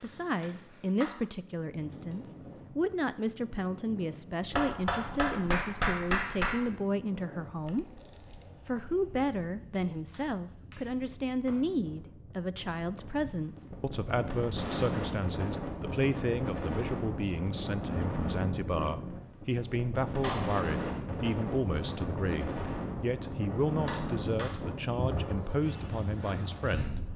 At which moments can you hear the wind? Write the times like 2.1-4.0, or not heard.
0.0-27.1.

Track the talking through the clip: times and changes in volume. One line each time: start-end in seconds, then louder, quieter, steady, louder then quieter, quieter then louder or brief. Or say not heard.
0.0-7.8 steady
8.7-27.0 steady.